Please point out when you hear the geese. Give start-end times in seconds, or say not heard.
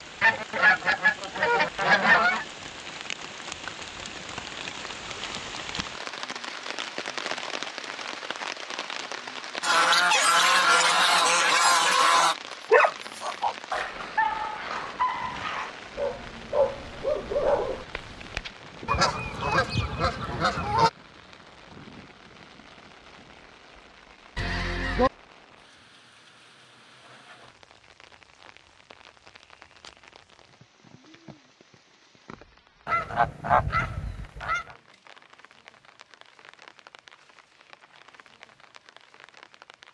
0.2-2.5, 9.6-12.3, 18.9-20.9, 24.4-25.1, 32.9-34.6.